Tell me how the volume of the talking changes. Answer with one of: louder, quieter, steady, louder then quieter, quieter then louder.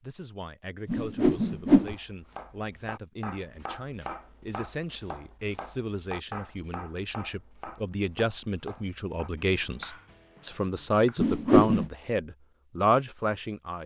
louder.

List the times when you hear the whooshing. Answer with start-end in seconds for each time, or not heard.
0.8-1.9, 11.2-11.9.